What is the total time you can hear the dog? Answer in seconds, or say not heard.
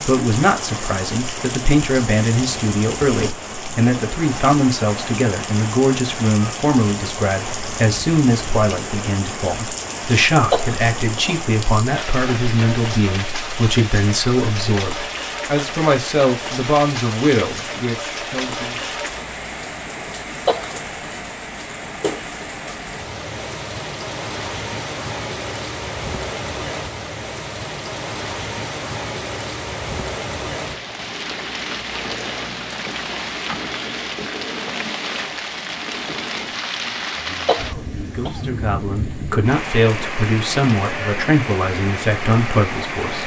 not heard.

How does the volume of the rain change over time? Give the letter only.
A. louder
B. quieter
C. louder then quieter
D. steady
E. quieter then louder
D.